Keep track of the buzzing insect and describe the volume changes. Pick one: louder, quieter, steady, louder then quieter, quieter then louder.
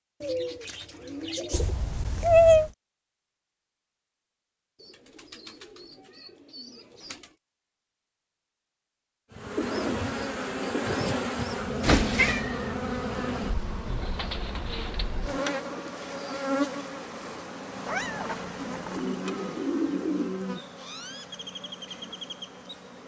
quieter.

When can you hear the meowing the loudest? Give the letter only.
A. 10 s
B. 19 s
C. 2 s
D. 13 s
C.